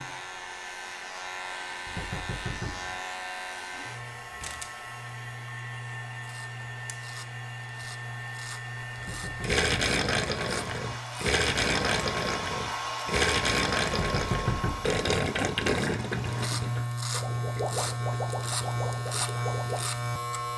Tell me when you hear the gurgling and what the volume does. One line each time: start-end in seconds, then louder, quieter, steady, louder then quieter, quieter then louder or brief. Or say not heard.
9.0-19.9 quieter.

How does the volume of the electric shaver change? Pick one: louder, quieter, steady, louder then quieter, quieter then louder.
louder.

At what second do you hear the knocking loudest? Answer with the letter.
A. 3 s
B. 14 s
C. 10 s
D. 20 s
B.